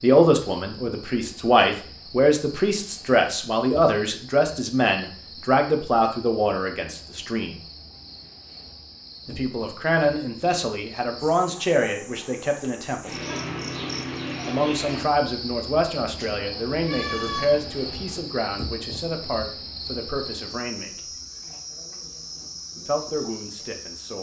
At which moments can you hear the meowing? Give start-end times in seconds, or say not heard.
16.2-18.2.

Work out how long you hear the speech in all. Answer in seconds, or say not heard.
19 s.